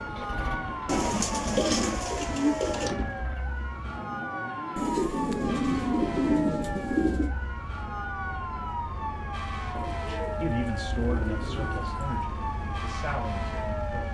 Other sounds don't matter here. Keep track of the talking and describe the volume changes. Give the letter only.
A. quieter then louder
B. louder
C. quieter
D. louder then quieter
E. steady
A.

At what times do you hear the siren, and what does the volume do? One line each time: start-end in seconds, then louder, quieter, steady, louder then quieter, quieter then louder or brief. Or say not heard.
0.0-14.1 steady.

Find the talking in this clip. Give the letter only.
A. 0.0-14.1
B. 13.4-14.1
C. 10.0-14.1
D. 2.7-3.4
C.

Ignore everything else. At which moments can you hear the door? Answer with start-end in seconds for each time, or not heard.
2.7-3.4.